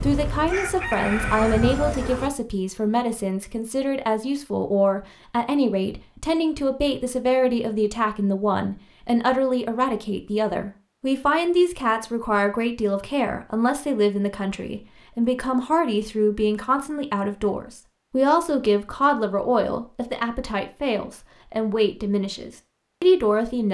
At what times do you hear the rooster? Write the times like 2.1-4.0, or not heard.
0.5-2.3.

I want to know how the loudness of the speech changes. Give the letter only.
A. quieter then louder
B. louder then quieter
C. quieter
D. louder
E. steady
E.